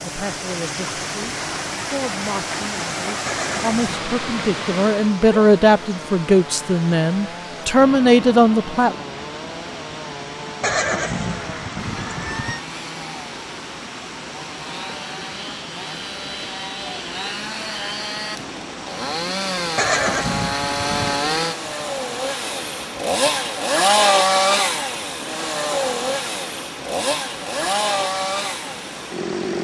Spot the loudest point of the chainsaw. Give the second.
24 s.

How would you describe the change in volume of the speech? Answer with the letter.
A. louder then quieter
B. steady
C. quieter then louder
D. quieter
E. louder
E.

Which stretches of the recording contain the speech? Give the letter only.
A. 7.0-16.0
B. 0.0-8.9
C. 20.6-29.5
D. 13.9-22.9
B.